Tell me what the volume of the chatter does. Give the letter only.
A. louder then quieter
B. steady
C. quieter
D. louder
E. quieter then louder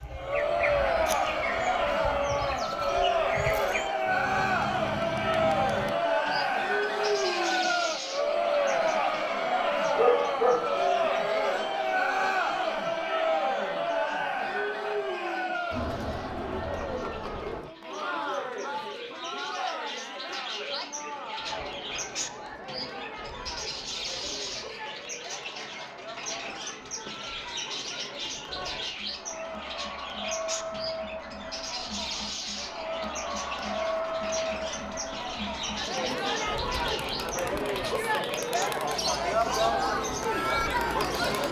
E.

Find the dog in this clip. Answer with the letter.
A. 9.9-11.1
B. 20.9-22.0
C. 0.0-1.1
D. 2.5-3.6
A.